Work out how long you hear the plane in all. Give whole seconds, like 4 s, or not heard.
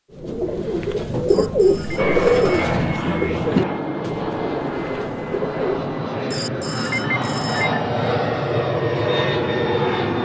8 s.